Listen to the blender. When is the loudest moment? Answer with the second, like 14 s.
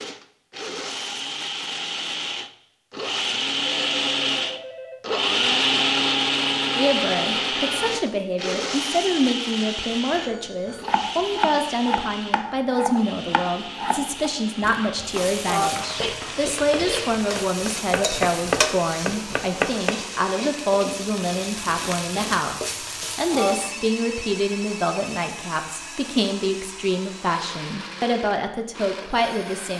6 s.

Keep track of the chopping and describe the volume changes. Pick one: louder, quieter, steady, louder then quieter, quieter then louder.
quieter then louder.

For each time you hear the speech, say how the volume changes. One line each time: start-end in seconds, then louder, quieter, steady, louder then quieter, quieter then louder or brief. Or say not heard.
6.8-29.7 steady.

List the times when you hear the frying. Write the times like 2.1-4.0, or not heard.
15.1-23.7.